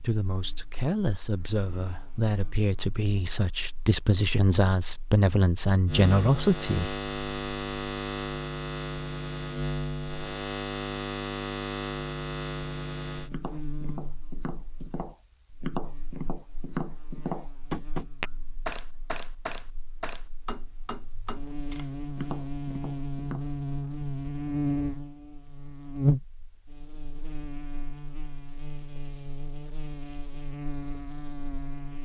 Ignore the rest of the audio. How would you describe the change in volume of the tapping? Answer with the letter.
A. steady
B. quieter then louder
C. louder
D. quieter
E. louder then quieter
E.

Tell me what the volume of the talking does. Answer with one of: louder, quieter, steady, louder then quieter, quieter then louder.
louder.